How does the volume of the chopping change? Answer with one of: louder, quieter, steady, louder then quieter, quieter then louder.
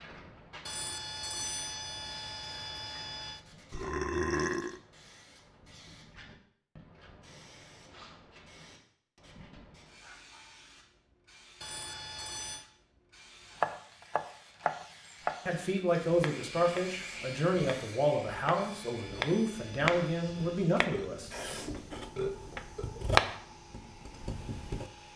quieter then louder.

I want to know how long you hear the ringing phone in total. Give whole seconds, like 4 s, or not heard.
6 s.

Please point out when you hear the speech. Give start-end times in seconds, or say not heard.
15.4-21.5.